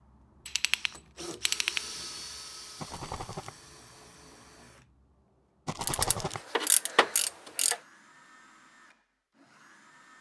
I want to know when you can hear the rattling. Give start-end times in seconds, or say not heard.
2.8-3.5, 5.7-6.4.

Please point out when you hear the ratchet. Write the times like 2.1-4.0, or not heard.
0.5-1.8, 5.8-7.8.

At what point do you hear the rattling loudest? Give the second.
6 s.